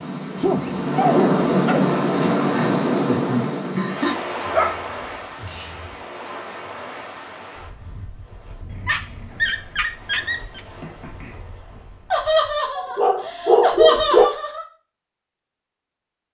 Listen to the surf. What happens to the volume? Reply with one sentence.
The loudness of the surf goes down.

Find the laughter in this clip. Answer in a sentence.
You can hear the laughter from 2.1 to 4.2 s and from 12.1 to 14.7 s.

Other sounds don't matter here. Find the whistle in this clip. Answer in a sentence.
You can't hear the whistle here.